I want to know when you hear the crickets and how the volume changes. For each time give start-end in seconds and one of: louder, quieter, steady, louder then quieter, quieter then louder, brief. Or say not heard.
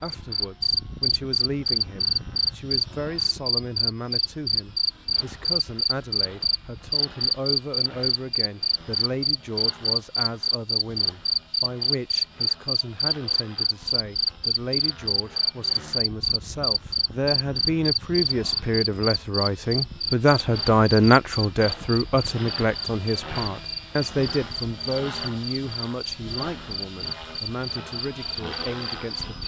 0.0-29.4 quieter.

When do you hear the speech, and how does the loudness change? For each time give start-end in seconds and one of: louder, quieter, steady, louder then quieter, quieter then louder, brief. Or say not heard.
0.0-29.4 louder then quieter.